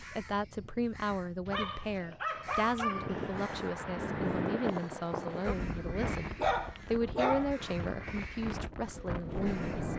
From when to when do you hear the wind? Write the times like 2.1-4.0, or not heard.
2.9-9.9.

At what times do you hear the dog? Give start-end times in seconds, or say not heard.
1.4-3.5, 6.3-8.0.